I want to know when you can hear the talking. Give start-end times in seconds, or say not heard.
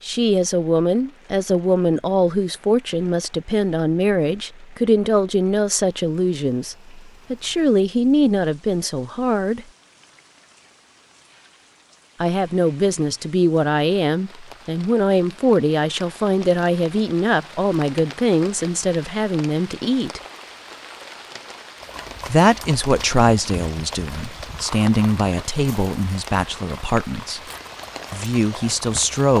0.0-9.7, 12.2-20.2, 22.2-27.4, 28.1-29.3.